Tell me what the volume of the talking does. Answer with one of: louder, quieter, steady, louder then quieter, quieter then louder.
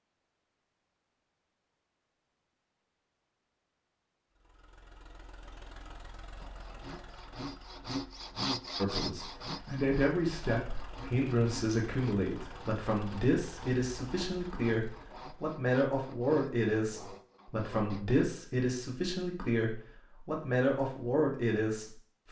steady.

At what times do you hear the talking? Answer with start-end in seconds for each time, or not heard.
8.8-22.2.